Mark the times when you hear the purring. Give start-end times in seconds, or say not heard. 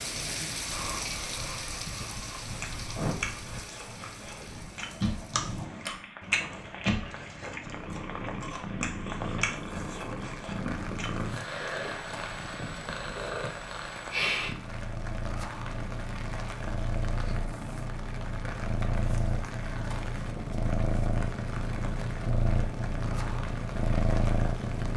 0.0-24.9.